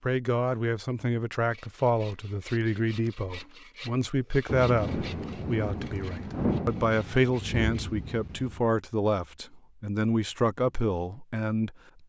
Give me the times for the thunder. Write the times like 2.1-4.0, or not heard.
4.5-8.7.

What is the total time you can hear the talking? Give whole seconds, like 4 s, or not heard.
12 s.